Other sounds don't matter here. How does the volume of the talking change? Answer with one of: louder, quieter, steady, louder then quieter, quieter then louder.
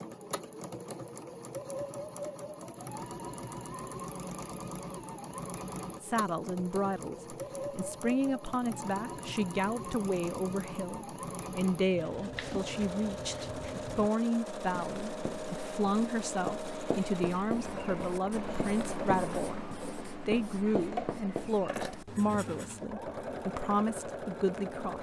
steady.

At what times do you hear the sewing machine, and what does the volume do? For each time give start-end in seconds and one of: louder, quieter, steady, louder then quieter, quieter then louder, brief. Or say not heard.
0.0-24.9 steady.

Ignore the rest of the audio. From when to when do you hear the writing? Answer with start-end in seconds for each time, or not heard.
11.8-22.9.